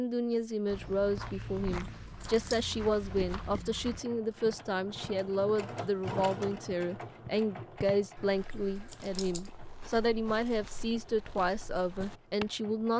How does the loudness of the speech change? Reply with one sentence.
The loudness of the speech stays about the same.